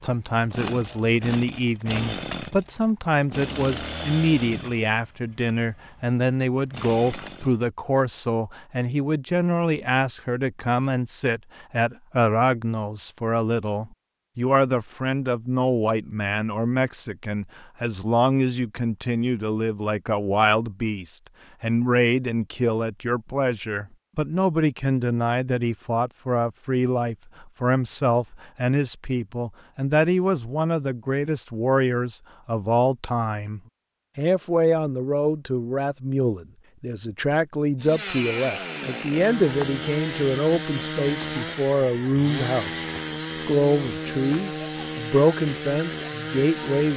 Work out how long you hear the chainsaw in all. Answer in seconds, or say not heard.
17 s.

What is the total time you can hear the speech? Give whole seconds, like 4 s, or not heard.
46 s.